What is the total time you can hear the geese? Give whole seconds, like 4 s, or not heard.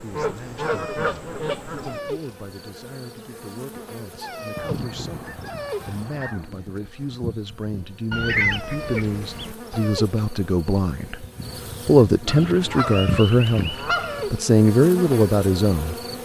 7 s.